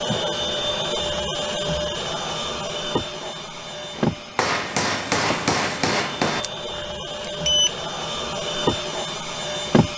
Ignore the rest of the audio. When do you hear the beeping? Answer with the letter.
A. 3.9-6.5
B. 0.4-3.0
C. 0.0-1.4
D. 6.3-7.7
D.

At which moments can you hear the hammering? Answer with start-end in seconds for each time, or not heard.
3.9-6.5.